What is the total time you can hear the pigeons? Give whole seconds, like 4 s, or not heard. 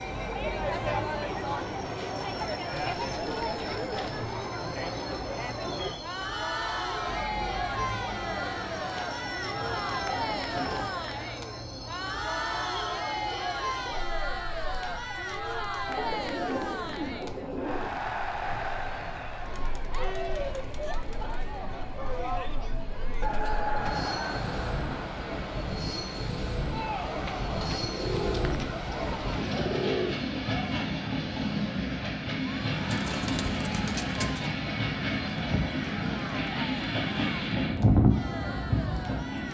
11 s.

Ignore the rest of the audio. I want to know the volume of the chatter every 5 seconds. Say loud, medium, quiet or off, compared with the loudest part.
loud, loud, loud, loud, loud, medium, medium, medium.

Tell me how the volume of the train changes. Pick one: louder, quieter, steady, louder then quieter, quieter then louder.
quieter then louder.